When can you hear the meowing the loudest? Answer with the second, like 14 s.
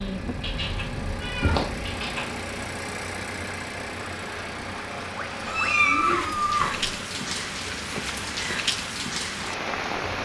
6 s.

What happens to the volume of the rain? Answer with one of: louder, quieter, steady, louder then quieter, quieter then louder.
louder.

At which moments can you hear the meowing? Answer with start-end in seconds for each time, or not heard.
0.4-2.2, 5.5-7.0.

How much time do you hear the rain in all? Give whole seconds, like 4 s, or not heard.
10 s.